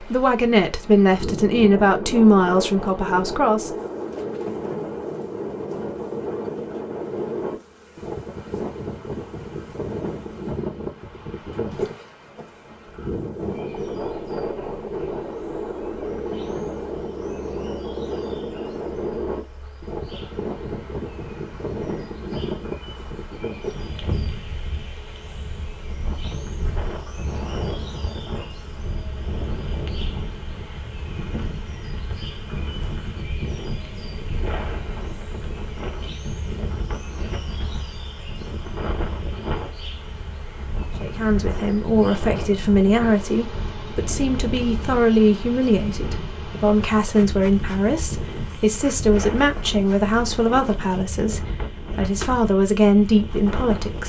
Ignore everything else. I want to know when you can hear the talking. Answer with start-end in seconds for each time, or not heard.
0.1-3.7, 41.0-54.0.